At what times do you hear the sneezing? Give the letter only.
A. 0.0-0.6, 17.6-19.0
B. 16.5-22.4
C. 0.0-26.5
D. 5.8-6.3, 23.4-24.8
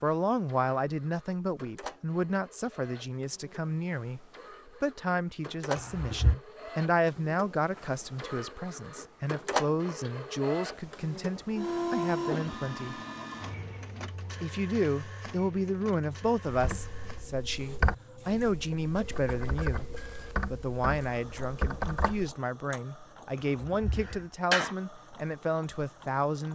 D.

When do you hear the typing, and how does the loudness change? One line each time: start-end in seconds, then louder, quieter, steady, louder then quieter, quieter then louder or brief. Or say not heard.
16.5-22.4 quieter then louder.